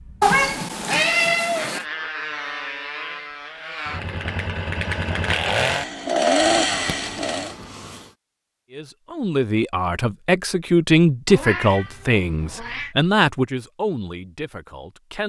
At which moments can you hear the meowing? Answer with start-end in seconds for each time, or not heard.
0.2-1.9, 6.5-8.1, 11.2-12.9.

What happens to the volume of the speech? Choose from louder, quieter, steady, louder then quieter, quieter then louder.
louder then quieter.